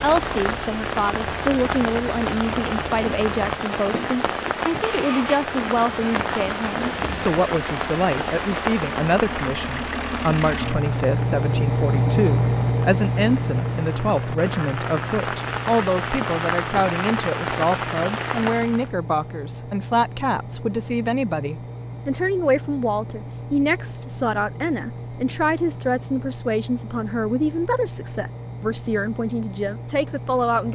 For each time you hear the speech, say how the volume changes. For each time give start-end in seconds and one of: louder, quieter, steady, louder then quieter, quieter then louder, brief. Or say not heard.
0.0-30.7 steady.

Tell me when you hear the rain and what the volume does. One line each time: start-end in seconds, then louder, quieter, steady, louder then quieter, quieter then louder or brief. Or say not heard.
0.0-18.9 quieter then louder.